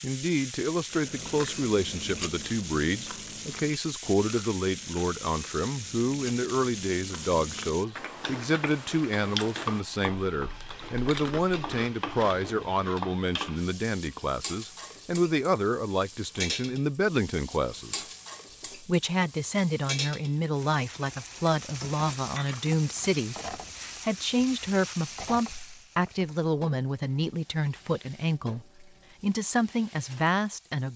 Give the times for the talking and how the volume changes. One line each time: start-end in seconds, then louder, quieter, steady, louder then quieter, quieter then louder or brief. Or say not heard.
0.0-18.1 steady
18.8-30.9 steady.